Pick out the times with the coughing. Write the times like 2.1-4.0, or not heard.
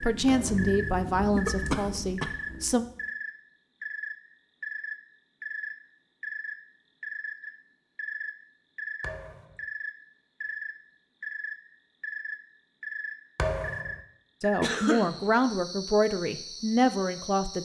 1.4-2.4, 14.6-15.2.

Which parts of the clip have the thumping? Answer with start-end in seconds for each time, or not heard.
0.2-0.7, 9.0-9.7, 13.3-14.0.